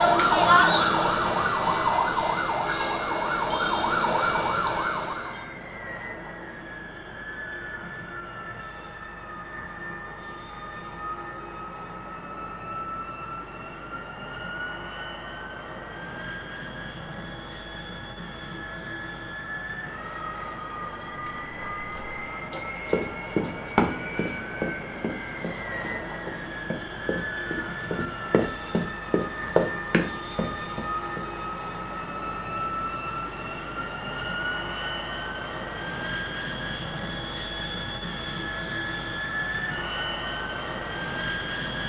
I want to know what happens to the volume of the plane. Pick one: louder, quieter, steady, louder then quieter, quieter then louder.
louder.